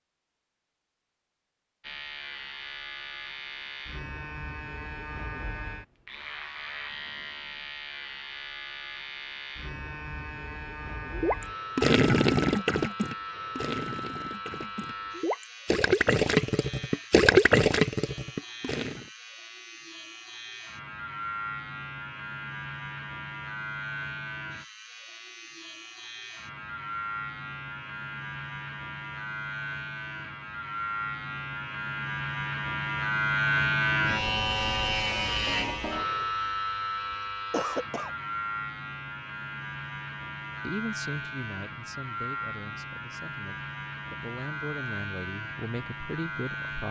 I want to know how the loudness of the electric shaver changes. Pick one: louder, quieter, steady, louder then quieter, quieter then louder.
louder then quieter.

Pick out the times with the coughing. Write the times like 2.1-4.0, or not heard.
37.1-38.1.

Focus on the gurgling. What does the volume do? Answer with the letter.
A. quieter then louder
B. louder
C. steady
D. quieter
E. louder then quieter
A.